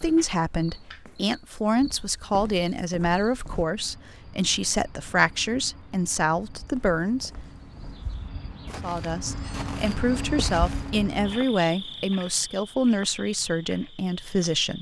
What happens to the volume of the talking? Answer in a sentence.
The loudness of the talking stays about the same.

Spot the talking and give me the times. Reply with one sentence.
You can hear the talking from 0.0 to 7.3 s and from 8.8 to 14.7 s.